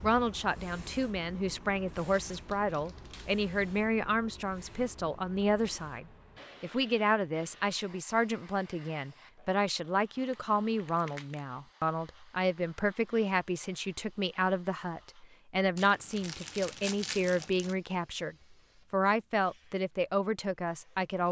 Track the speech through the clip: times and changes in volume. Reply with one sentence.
You can hear the speech from 0.0 to 21.2 s, at a steady volume.